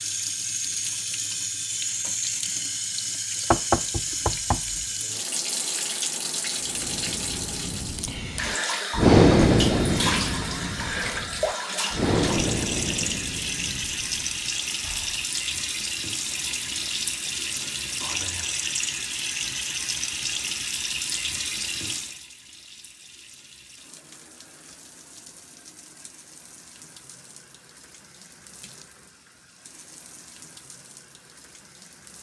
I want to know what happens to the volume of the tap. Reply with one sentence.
The volume of the tap goes down.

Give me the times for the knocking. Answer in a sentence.
The knocking can be heard from 3.5 to 4.8 s.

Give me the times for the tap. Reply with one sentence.
You can hear the tap from 0.0 to 32.1 s.